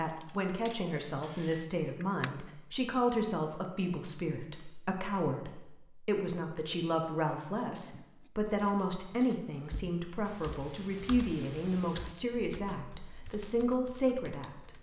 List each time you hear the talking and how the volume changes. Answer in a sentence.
You can hear the talking from 0.0 to 14.7 s, at a steady volume.